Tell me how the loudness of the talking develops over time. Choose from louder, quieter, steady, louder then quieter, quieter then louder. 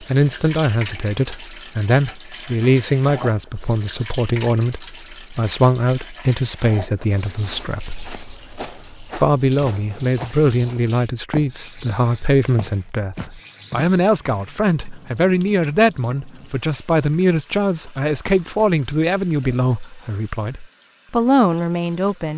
steady.